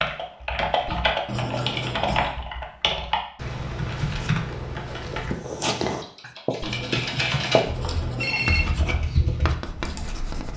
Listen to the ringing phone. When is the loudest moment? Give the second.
8 s.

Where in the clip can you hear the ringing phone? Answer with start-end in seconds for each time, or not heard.
1.2-2.4, 6.7-8.7.